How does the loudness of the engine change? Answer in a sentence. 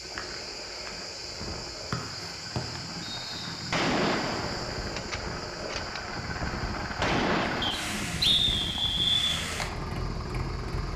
The volume of the engine goes up.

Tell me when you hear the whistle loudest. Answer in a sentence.
The loudest moment of the whistle is at 8 seconds.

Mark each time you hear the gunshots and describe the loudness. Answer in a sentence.
You can hear the gunshots from 3.7 to 7.8 s, getting quieter then louder.